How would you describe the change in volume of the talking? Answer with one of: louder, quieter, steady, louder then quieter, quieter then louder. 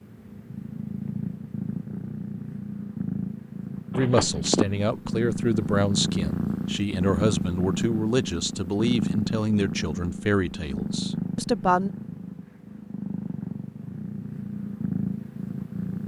steady.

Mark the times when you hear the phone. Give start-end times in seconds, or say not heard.
3.9-4.7.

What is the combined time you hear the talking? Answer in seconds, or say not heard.
8 s.